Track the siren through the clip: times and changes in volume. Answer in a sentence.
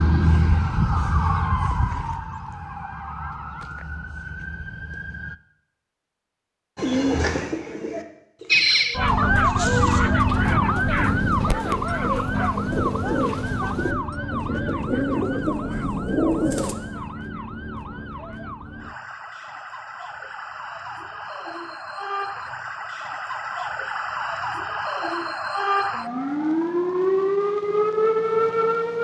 You can hear the siren from 0.0 to 5.4 s, getting quieter; and from 8.5 to 28.9 s, getting quieter then louder.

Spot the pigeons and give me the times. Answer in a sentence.
You can hear the pigeons from 6.8 to 16.8 s.